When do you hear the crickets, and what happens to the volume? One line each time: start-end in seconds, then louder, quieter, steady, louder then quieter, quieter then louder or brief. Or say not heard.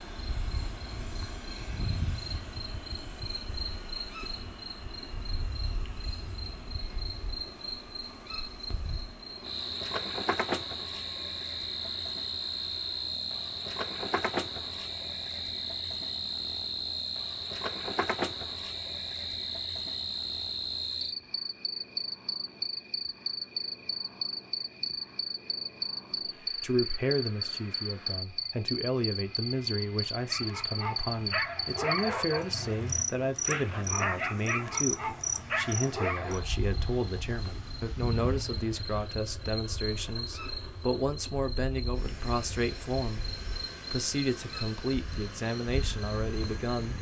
0.0-46.9 louder then quieter.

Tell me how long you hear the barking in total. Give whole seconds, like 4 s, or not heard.
6 s.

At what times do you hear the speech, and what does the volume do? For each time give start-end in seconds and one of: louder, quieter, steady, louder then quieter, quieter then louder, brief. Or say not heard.
26.4-46.9 steady.